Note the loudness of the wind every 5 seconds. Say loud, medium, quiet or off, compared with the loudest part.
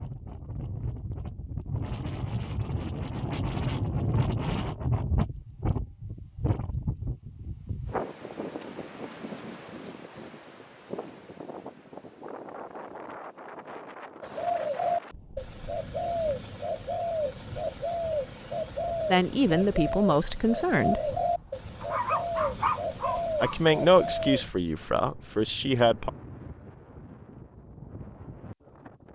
loud, loud, medium, quiet, quiet, quiet.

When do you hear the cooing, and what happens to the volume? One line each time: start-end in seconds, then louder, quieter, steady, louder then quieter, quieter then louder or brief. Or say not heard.
14.2-24.5 steady.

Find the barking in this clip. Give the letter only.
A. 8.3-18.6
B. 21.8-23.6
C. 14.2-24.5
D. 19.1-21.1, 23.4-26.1
B.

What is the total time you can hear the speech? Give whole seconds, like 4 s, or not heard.
5 s.